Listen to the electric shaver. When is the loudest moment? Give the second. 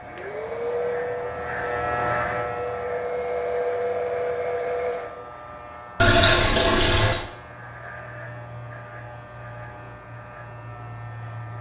2 s.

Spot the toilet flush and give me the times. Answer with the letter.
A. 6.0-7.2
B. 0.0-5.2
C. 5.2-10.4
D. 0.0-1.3
A.